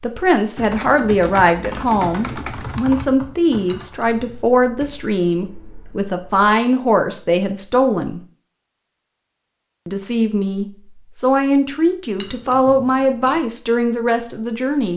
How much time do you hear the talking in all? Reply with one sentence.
The talking can be heard for 13 seconds in total.